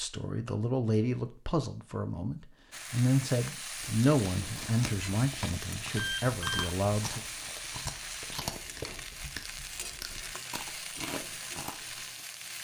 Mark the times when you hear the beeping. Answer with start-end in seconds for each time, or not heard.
6.0-6.8.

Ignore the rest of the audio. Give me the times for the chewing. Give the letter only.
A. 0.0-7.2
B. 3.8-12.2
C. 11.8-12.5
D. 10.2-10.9
B.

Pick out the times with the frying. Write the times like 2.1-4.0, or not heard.
2.7-12.5.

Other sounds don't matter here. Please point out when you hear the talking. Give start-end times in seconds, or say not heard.
0.0-7.2.